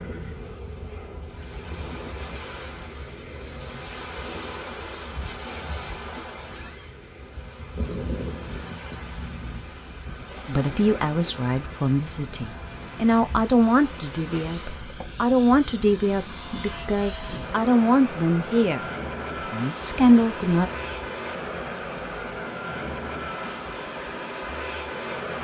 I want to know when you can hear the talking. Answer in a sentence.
You can hear the talking from 10.4 to 18.9 s and from 19.5 to 20.7 s.